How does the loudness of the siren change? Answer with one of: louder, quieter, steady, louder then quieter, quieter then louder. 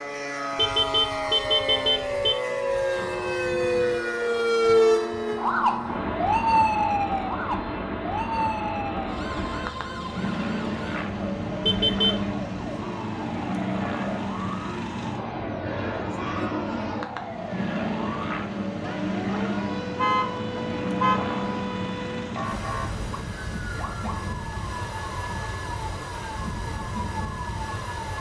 quieter.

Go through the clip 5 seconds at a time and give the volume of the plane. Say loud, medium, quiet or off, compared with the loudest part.
loud, loud, loud, loud, loud, medium.